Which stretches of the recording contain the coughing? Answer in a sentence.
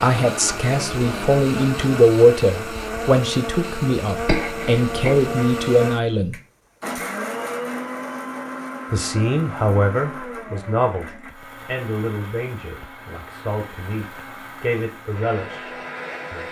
You can hear the coughing from 4.2 to 5.3 s.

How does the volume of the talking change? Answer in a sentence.
The volume of the talking goes down.